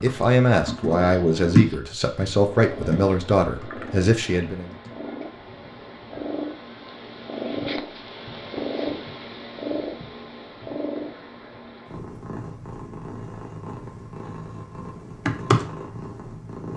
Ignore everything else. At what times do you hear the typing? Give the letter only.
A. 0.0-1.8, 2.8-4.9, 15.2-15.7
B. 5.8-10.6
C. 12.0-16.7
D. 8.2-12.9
A.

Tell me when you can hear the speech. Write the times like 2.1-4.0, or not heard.
0.0-4.7.